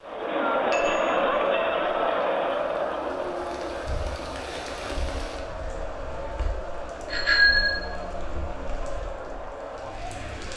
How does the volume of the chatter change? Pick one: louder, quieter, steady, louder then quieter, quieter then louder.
quieter.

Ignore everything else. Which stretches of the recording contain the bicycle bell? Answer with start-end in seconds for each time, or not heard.
0.7-1.3, 7.1-7.8.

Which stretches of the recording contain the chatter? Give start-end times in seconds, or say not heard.
0.0-10.5.